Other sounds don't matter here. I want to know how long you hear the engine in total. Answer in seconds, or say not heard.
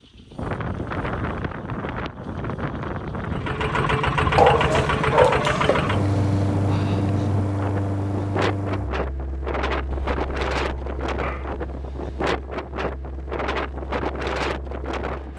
12 s.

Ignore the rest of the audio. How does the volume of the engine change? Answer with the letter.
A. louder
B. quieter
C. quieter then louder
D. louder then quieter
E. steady
B.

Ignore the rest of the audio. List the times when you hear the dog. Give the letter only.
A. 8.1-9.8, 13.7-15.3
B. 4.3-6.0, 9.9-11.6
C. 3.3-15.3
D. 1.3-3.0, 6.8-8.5
B.